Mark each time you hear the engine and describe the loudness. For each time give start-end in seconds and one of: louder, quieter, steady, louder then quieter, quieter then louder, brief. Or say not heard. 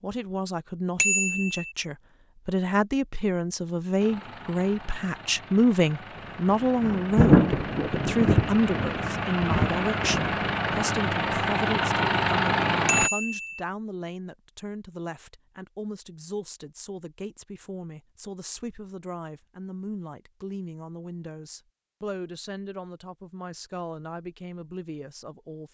4.0-13.1 louder.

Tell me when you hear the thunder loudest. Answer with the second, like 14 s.
7 s.